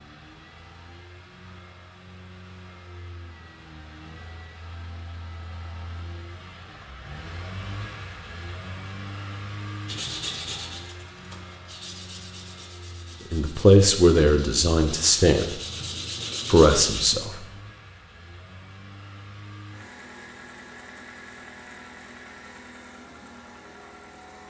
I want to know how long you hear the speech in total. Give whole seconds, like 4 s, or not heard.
3 s.